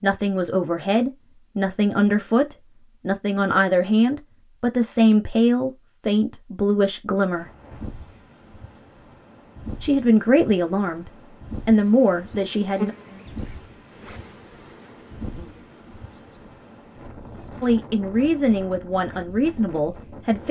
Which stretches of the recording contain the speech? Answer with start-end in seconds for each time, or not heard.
0.0-7.5, 9.8-12.9, 17.6-20.4.